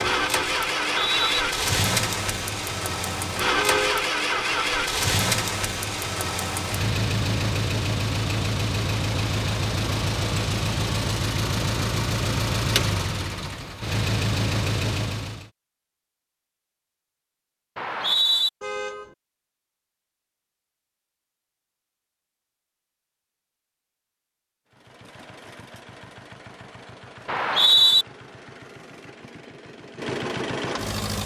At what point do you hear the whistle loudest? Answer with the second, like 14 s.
28 s.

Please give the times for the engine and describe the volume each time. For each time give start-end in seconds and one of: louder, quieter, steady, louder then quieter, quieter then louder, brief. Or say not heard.
0.0-15.5 steady
24.7-31.2 louder.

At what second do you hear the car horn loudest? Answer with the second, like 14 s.
4 s.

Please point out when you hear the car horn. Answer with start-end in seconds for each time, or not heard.
3.5-4.0, 18.6-19.1.